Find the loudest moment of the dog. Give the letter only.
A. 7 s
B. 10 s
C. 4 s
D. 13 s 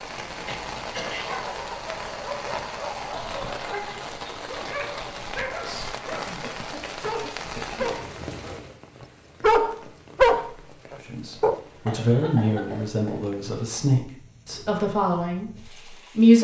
B.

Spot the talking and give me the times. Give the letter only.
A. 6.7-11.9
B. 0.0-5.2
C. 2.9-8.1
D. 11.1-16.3
D.